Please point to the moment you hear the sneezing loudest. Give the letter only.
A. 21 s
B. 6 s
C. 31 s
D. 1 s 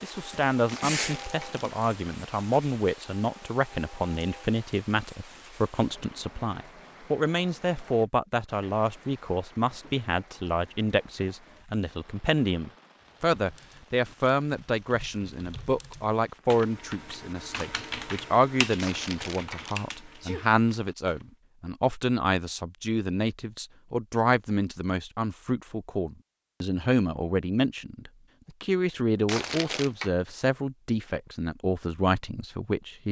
D.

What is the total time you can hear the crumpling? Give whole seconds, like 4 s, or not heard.
3 s.